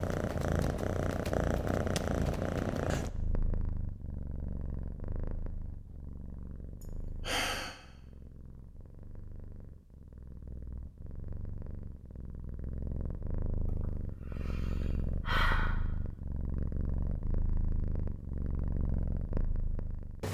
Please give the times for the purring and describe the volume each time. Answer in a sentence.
You can hear the purring from 0.0 to 20.2 s, getting quieter then louder.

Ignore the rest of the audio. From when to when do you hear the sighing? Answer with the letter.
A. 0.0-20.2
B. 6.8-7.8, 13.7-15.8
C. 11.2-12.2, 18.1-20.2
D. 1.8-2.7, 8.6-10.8
B.